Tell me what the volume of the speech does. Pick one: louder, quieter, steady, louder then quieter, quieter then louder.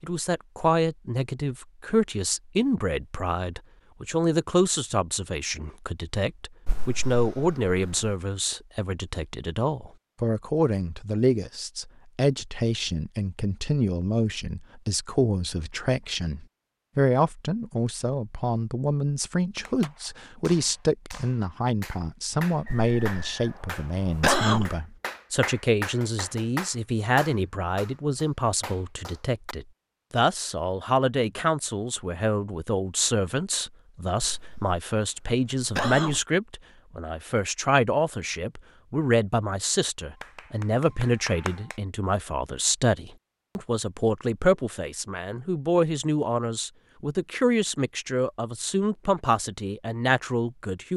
steady.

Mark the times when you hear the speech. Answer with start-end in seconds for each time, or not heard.
0.0-50.9.